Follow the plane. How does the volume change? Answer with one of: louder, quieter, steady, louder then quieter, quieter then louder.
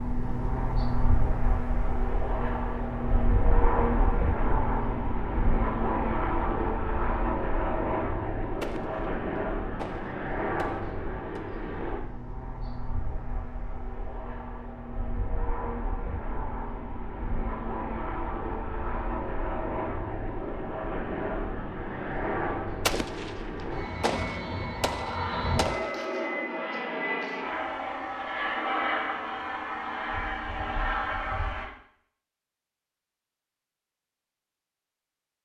quieter then louder.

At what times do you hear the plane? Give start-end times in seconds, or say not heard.
0.0-31.6.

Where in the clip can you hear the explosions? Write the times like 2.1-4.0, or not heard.
8.6-11.4, 22.9-26.0.